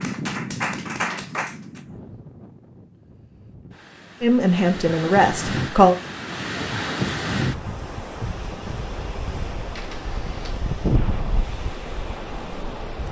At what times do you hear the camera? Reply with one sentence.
The camera can be heard from 9.7 to 10.6 s.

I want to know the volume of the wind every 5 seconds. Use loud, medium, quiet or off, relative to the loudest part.
medium, loud, loud.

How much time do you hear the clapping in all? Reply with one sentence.
The clapping can be heard for 2 seconds in total.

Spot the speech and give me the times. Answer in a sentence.
The speech can be heard from 4.2 to 6.0 s.